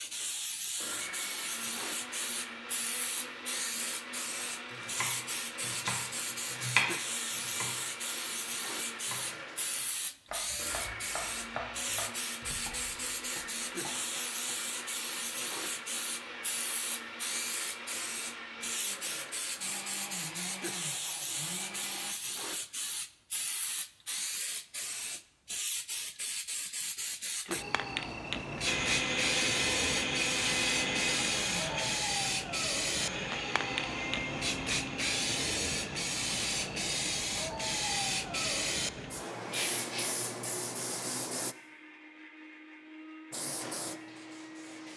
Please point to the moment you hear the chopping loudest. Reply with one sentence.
The volume of the chopping peaks at 7 seconds.